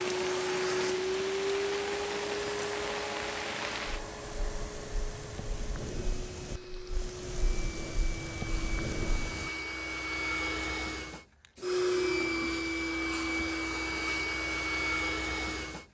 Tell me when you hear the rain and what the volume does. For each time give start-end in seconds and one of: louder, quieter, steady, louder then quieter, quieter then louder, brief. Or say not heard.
0.0-9.5 quieter then louder.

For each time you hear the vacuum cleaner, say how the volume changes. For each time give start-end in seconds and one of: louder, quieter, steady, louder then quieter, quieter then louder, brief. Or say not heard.
0.0-15.8 quieter then louder.